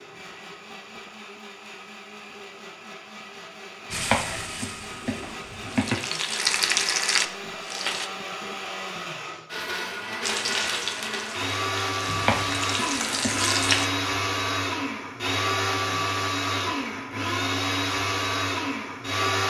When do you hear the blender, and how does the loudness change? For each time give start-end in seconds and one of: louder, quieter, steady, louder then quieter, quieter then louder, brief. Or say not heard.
0.0-19.4 louder.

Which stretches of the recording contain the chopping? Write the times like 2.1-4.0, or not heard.
3.9-6.0, 12.1-13.5.